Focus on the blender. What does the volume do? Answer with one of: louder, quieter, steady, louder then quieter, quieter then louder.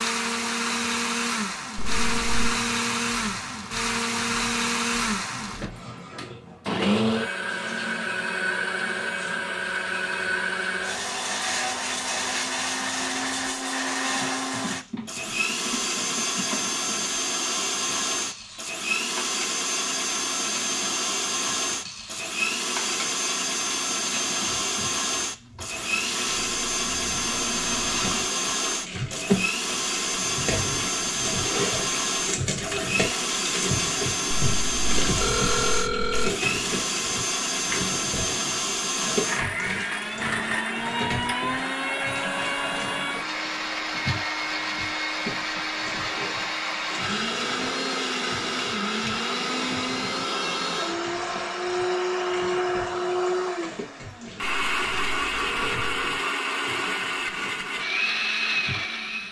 steady.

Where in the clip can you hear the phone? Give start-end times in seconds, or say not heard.
1.8-2.5, 34.4-36.3, 54.4-56.2.